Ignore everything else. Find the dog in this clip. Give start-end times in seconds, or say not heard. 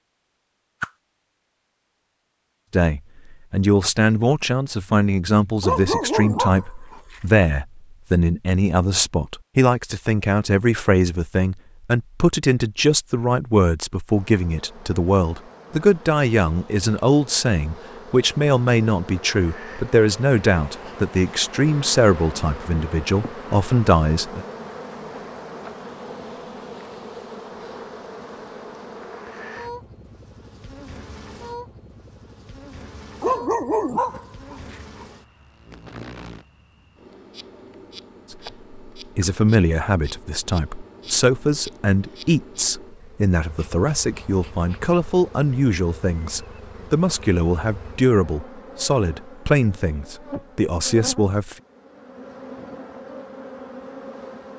5.6-7.2, 33.2-35.0.